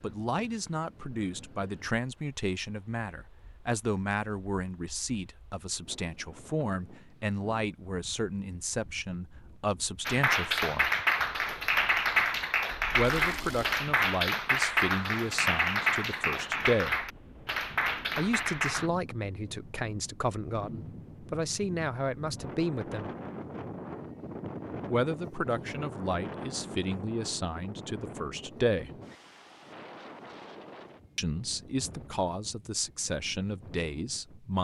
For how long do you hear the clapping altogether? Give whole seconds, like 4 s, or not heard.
9 s.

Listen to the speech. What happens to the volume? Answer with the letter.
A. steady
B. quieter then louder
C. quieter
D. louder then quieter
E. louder
A.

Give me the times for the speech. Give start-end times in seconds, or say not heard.
0.0-10.9, 12.9-17.0, 18.1-23.1, 24.9-28.9, 31.1-34.6.